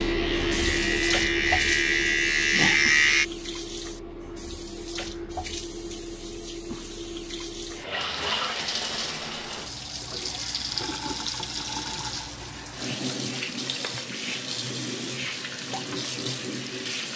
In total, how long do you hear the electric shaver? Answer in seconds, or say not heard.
3 s.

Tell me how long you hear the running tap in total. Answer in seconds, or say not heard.
17 s.